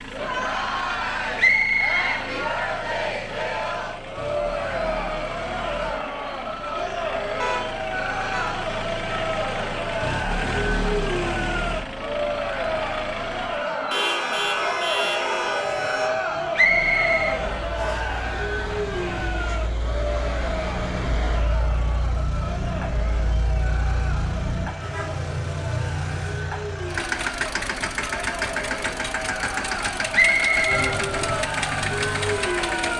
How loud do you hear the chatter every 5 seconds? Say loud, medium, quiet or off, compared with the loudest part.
loud, loud, loud, loud, medium, medium, loud.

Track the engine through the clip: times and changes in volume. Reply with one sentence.
The engine can be heard from 0.0 to 13.7 s, getting louder; and from 16.6 to 32.9 s, getting louder.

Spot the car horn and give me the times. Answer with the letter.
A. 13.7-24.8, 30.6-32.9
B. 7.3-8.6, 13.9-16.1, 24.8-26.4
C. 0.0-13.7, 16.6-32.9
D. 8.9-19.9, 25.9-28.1
B.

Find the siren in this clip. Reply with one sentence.
The siren can be heard from 13.7 to 24.8 s and from 30.6 to 32.9 s.